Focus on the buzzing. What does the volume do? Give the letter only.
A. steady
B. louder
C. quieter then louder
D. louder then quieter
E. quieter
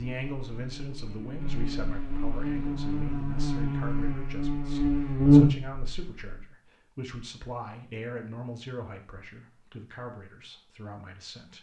B.